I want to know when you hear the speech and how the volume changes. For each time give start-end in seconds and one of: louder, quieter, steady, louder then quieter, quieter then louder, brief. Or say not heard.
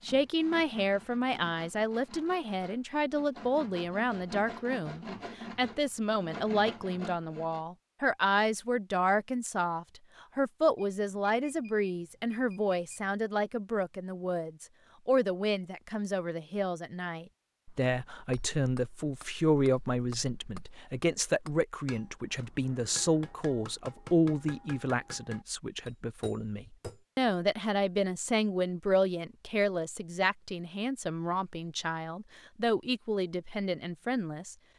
0.1-34.5 steady.